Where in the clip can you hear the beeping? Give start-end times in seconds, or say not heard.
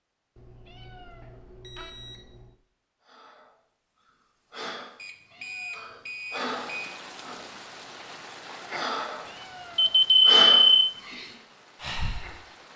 0.3-2.5, 5.0-7.0, 9.8-10.9.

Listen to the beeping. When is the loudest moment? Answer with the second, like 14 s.
10 s.